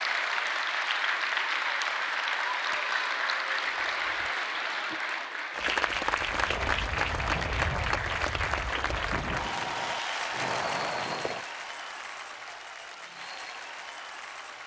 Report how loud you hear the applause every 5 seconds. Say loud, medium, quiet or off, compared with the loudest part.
loud, loud, medium.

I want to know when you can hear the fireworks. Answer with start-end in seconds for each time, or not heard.
6.1-11.4.